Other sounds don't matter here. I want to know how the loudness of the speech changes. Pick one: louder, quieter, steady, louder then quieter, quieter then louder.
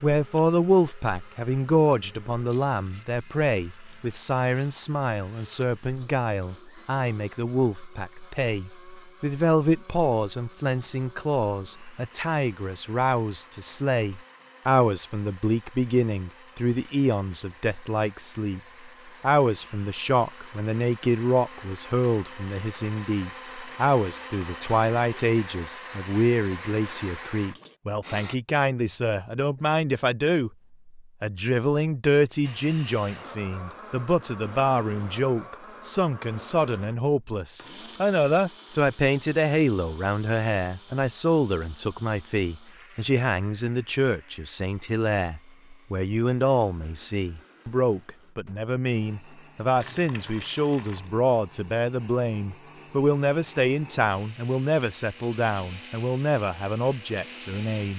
steady.